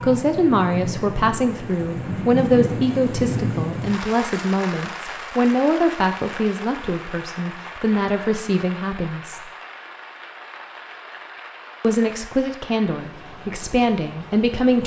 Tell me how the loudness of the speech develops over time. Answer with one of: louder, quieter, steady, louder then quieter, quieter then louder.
steady.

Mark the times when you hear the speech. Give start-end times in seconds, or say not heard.
0.0-9.4, 11.8-14.8.